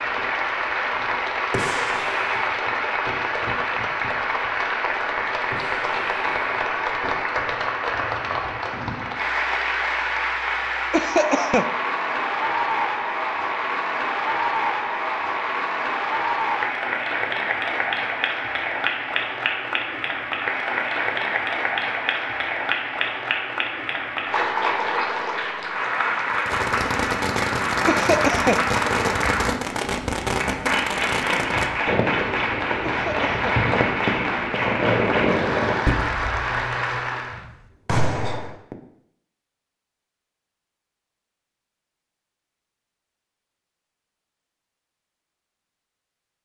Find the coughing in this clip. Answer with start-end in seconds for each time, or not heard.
10.9-11.8, 27.9-28.6, 32.8-33.6.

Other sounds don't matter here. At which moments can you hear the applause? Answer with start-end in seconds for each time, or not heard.
0.0-37.5.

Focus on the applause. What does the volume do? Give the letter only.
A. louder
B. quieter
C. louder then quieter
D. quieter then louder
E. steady
E.